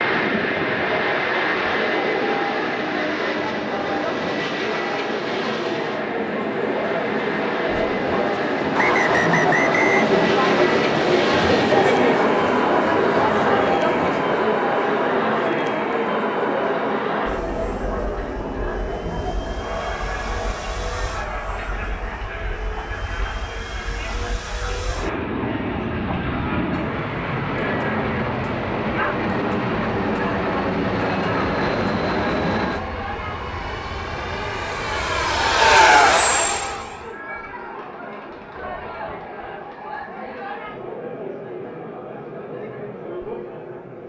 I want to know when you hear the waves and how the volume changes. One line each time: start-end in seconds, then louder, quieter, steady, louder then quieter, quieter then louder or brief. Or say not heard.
not heard.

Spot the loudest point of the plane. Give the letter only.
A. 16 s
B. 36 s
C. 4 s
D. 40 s
B.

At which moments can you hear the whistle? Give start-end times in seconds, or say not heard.
8.8-10.1.